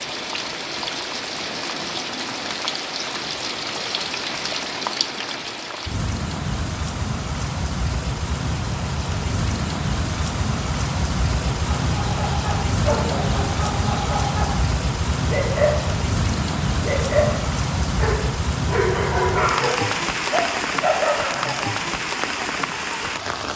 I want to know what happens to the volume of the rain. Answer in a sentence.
The volume of the rain stays about the same.